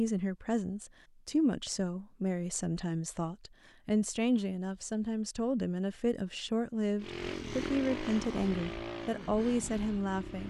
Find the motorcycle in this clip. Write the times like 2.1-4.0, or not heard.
7.0-10.4.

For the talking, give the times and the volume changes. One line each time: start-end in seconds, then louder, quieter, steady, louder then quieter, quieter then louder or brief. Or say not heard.
0.0-10.4 steady.